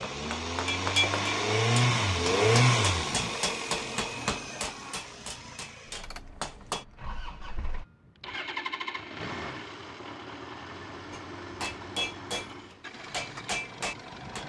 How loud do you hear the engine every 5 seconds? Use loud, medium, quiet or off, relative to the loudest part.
loud, quiet, quiet.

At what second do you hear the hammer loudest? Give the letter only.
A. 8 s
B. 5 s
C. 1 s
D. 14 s
C.